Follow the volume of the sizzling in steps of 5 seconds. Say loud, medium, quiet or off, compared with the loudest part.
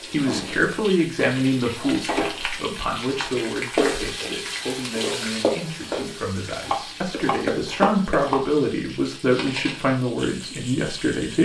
loud, loud, medium.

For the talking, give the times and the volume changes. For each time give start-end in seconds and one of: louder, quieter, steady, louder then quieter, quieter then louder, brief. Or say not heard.
0.1-11.4 quieter then louder.